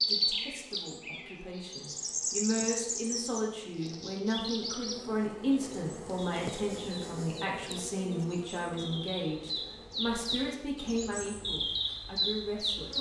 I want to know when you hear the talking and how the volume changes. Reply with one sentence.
The talking can be heard from 0.1 to 12.9 s, at a steady volume.